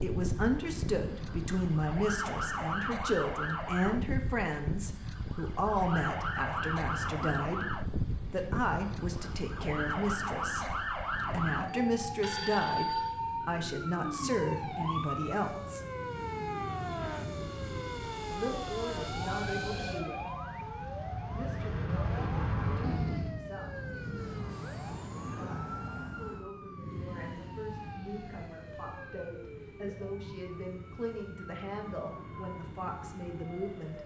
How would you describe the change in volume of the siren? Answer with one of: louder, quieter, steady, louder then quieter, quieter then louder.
quieter.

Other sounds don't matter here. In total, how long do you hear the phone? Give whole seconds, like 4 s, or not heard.
3 s.